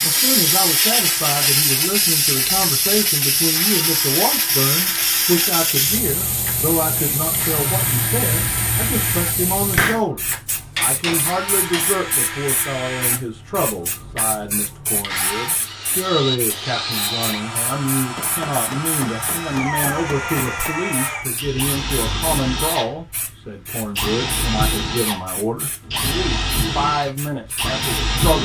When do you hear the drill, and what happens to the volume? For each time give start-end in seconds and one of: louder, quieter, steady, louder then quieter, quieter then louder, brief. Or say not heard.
0.0-28.3 louder.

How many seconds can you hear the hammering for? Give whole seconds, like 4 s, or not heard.
4 s.